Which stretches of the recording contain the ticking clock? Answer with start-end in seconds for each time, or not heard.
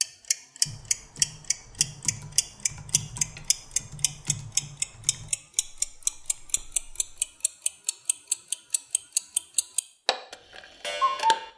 0.0-11.5.